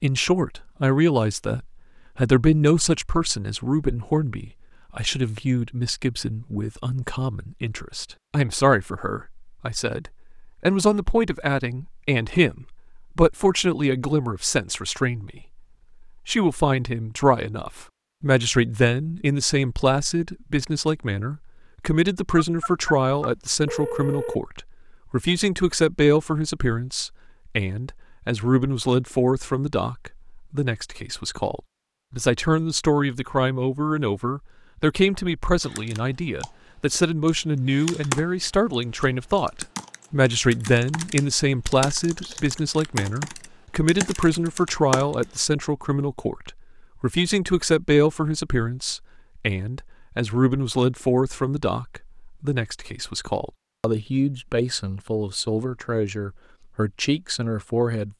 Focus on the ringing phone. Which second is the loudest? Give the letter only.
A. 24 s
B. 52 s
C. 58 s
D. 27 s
A.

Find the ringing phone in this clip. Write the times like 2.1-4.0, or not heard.
22.4-24.4.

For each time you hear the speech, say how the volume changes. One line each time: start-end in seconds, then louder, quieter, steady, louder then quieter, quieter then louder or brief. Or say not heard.
0.0-58.1 steady.